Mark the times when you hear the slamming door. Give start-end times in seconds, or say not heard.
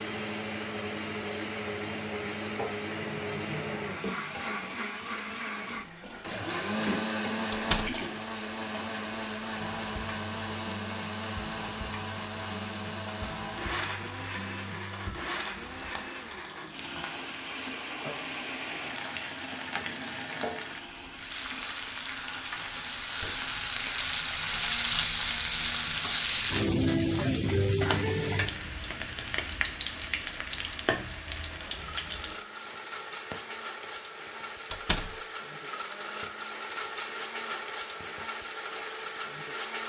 7.5-8.0, 23.1-23.6, 34.7-35.1.